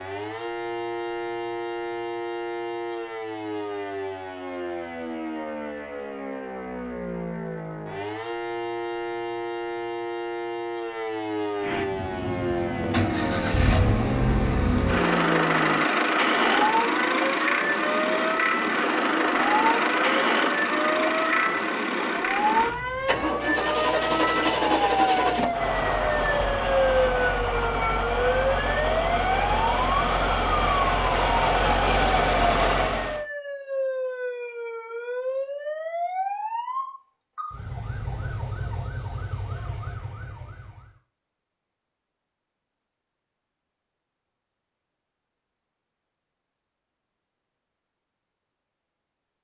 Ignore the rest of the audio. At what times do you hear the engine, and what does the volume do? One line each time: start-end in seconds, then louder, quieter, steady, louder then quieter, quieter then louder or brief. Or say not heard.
11.6-33.2 steady.